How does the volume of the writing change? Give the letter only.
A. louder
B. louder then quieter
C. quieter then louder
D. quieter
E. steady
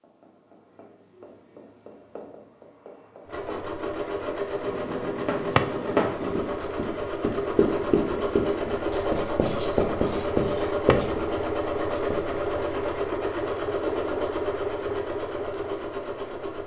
A.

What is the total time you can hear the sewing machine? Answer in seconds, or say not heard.
13 s.